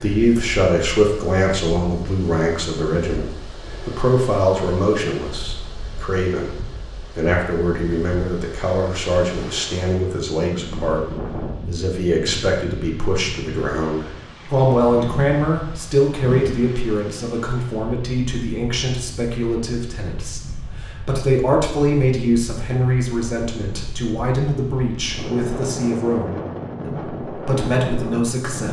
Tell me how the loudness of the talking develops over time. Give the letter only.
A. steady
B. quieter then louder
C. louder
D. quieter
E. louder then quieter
A.